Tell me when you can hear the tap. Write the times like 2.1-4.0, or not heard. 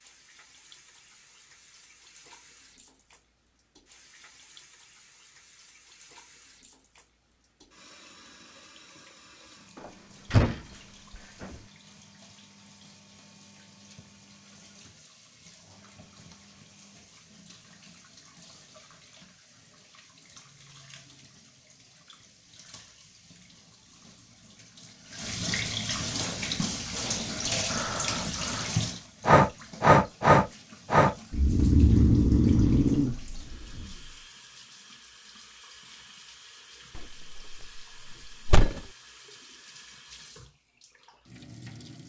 0.0-42.0.